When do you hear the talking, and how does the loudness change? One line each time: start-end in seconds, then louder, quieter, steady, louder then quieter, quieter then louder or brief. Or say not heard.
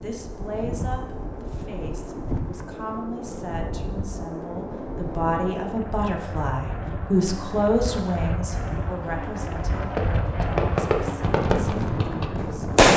0.0-12.7 louder then quieter.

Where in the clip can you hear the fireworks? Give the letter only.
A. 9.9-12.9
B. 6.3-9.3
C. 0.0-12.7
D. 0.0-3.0
A.